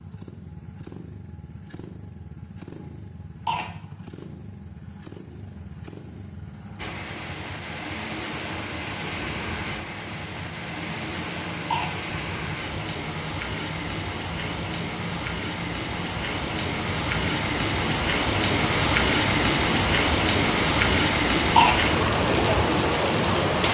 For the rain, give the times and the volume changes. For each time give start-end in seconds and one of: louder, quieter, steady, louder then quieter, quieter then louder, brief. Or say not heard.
6.8-23.6 louder.